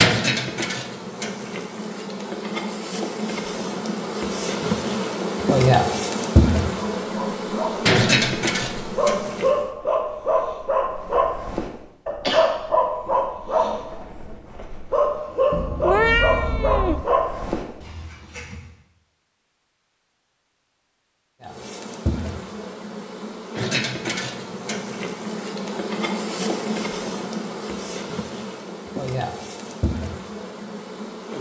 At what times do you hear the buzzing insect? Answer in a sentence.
The buzzing insect can be heard from 0.0 to 9.7 s and from 21.4 to 31.3 s.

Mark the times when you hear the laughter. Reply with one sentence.
You can't hear the laughter here.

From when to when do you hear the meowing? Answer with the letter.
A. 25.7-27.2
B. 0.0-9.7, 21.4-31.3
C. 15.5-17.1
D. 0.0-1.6
C.